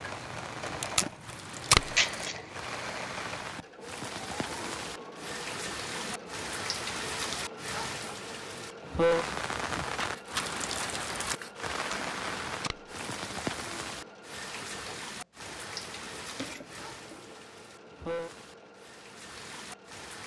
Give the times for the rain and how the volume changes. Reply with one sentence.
The rain can be heard from 0.0 to 20.2 s, getting louder then quieter.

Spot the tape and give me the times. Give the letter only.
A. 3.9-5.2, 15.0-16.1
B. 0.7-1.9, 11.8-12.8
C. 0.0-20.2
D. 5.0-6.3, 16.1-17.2
B.